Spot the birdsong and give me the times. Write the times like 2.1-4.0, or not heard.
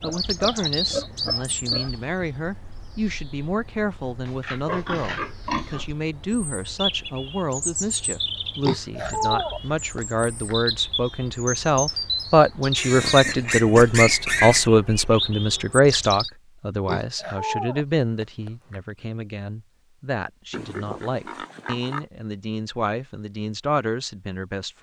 0.0-16.3.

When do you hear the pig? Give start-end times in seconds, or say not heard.
0.0-1.9, 4.2-5.8, 8.6-10.6, 12.8-14.7, 16.9-18.8, 20.5-22.1.